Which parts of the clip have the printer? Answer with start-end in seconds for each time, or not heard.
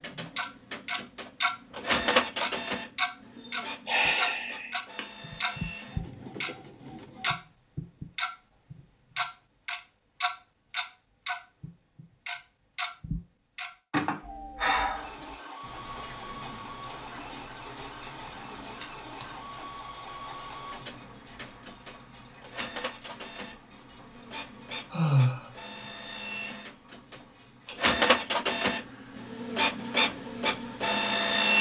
0.0-7.3, 14.9-31.5.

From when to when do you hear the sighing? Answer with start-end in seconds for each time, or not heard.
3.9-5.0, 13.9-15.1, 24.5-25.5.